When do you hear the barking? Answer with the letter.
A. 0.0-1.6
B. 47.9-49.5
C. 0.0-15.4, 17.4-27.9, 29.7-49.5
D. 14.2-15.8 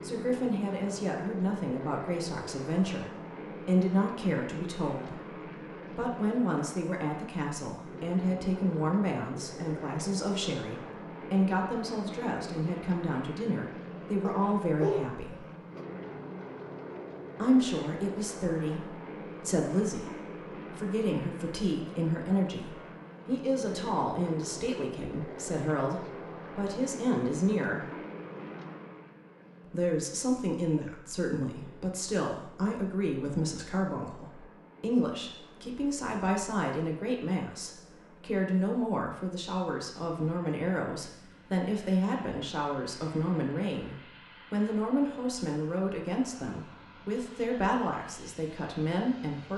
D.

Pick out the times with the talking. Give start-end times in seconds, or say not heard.
0.0-15.4, 17.4-27.9, 29.7-49.5.